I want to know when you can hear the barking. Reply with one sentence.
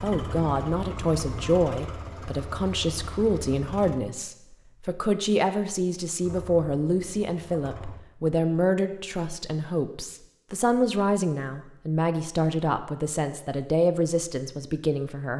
The barking can't be heard in this clip.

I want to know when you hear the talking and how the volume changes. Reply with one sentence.
The talking can be heard from 0.0 to 15.3 s, at a steady volume.